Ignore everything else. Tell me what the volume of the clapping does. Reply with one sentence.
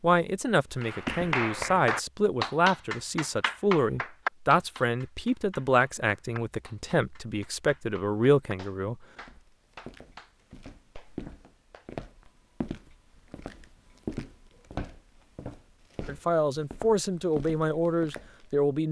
The loudness of the clapping goes down.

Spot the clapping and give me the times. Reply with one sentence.
The clapping can be heard from 0.8 to 12.3 s.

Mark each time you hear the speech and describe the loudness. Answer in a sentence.
The speech can be heard from 0.0 to 8.9 s, at a steady volume; and briefly from 16.1 to 18.8 s.